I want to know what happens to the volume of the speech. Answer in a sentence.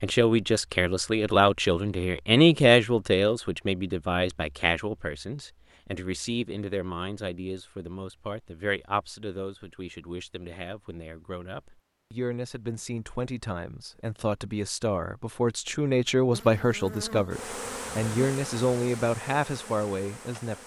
The volume of the speech goes down, then up.